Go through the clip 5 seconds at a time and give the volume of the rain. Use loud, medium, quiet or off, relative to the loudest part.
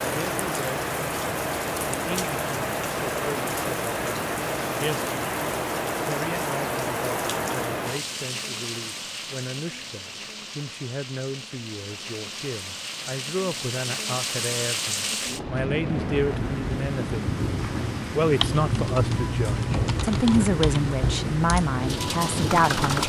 loud, loud, medium, loud, loud.